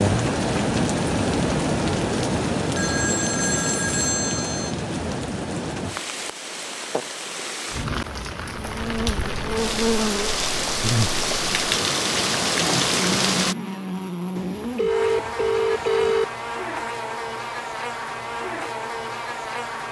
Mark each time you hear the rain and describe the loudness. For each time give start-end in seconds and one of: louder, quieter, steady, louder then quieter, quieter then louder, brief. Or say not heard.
0.0-13.6 quieter then louder.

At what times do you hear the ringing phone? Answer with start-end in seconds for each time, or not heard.
2.8-4.8, 14.3-16.2.